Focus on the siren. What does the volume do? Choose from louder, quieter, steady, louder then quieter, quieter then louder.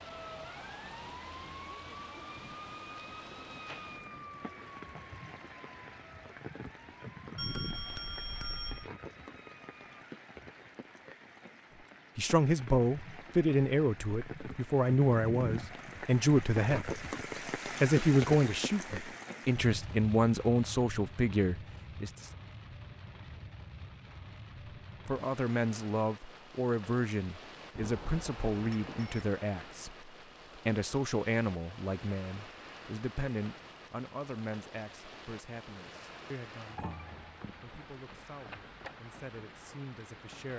quieter.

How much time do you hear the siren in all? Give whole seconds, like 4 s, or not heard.
10 s.